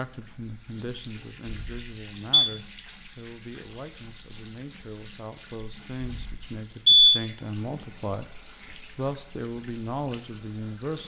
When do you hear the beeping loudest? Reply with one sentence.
The volume of the beeping peaks at 7 seconds.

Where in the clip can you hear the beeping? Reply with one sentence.
You can hear the beeping from 1.4 to 2.5 s and from 6.0 to 7.2 s.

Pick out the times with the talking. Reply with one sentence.
You can hear the talking from 0.0 to 11.0 s.